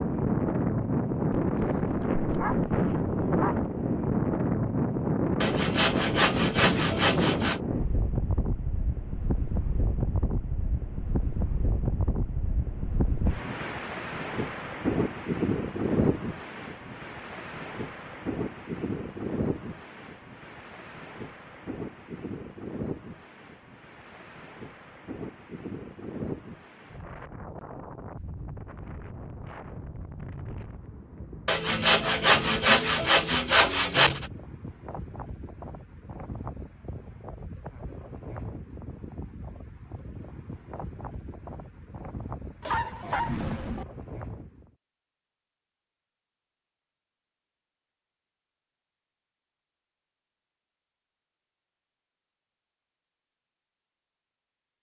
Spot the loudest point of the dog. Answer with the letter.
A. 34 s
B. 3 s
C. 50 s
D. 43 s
D.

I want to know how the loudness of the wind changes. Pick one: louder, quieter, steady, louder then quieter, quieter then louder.
quieter.